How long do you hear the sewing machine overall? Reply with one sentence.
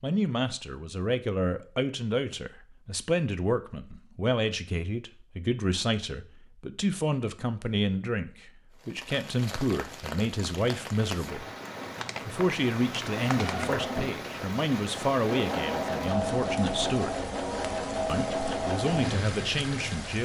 The sewing machine can be heard for 7 seconds in total.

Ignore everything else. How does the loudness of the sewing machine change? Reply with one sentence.
The loudness of the sewing machine stays about the same.